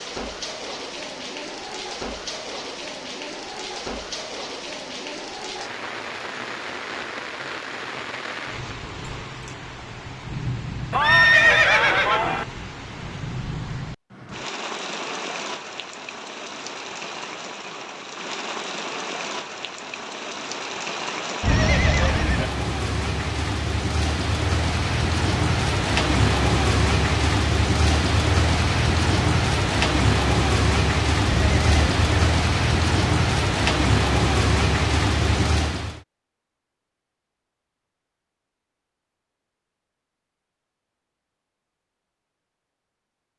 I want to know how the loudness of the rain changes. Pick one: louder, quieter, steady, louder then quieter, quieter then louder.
louder.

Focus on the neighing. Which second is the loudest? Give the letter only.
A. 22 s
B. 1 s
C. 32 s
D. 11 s
D.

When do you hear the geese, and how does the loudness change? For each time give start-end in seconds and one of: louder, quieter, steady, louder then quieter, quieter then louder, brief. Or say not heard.
not heard.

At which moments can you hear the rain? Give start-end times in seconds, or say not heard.
0.0-36.0.